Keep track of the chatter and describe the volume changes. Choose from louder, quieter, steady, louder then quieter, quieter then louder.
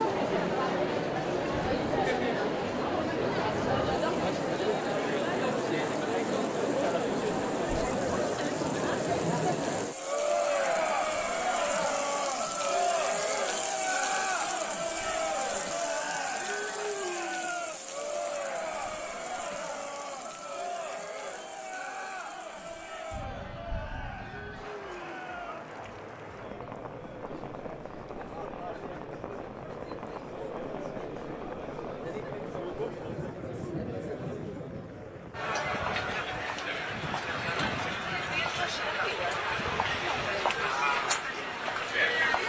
quieter then louder.